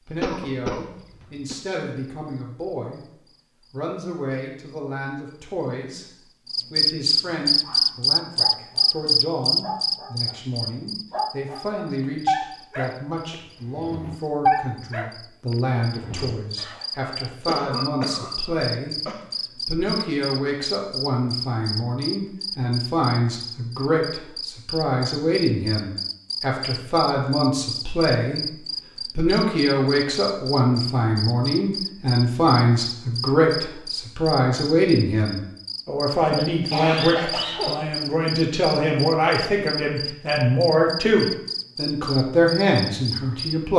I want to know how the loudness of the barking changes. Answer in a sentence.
The loudness of the barking goes up, then down.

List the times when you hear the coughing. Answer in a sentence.
The coughing can be heard from 0.2 to 1.6 s, from 17.4 to 19.2 s and from 36.4 to 37.9 s.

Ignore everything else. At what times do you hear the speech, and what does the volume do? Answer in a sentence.
You can hear the speech briefly from 0.1 to 3.0 s; briefly from 3.7 to 6.0 s; from 6.7 to 28.6 s, getting louder; and from 29.1 to 43.7 s, at a steady volume.